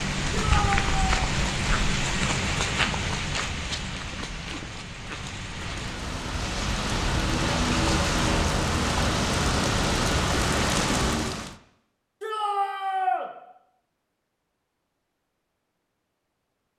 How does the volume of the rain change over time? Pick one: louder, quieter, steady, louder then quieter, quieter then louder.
quieter then louder.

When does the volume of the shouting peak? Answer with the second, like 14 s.
13 s.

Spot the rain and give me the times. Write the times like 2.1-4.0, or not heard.
0.0-11.6.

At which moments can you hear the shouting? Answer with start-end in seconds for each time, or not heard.
0.3-1.1, 12.2-13.2.